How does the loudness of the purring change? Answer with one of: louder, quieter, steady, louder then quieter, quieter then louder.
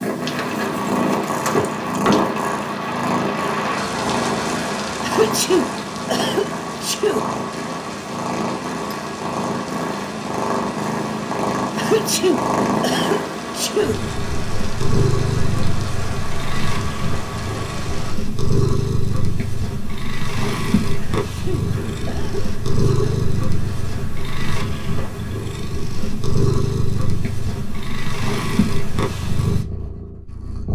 steady.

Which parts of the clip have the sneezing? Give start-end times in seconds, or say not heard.
5.0-7.2, 11.8-13.9, 21.2-23.2.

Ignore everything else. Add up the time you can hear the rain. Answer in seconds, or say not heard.
18 s.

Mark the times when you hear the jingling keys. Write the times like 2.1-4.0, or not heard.
0.3-2.2.